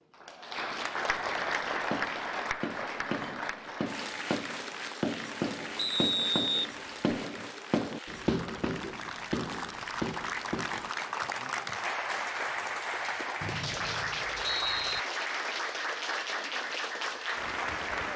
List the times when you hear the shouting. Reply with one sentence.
The shouting can't be heard in this clip.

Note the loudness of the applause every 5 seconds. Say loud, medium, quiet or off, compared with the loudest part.
loud, medium, loud, loud.